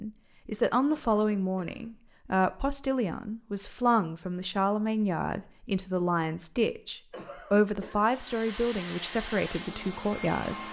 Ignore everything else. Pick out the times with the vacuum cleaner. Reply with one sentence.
The vacuum cleaner can be heard from 8.0 to 10.6 s.